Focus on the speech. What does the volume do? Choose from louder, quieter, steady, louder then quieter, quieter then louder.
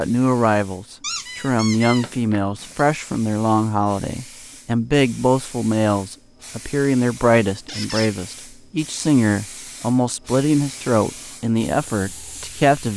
steady.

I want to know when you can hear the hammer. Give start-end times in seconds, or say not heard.
not heard.